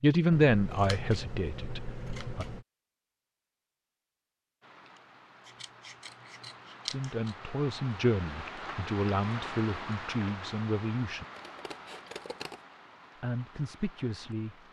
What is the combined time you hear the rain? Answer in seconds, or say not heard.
10 s.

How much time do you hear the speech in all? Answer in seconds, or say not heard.
8 s.